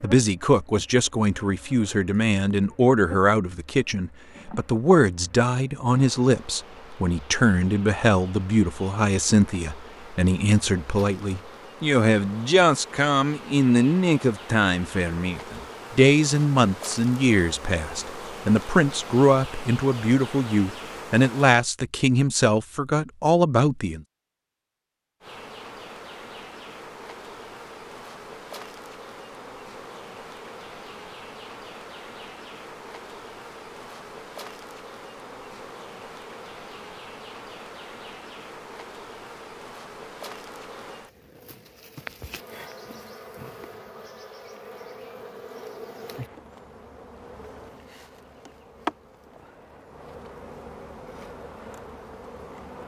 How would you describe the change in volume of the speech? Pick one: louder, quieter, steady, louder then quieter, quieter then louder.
steady.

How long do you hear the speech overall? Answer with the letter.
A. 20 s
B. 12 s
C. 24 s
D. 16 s
C.